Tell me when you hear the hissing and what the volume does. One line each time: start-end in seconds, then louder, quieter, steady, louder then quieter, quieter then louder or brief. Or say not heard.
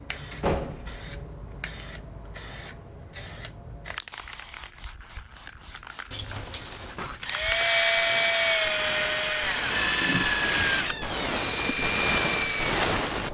0.0-13.2 louder.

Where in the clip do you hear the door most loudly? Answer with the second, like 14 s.
11 s.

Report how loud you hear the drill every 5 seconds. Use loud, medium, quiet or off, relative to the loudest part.
off, loud, loud.